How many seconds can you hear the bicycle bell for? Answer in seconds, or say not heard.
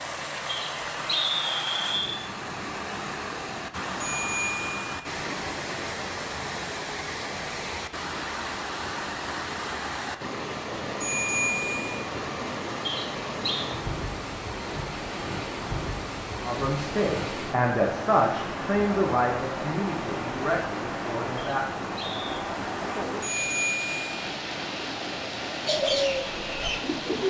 3 s.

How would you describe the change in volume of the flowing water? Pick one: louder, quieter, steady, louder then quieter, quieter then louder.
steady.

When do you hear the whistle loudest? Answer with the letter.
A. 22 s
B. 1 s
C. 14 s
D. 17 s
B.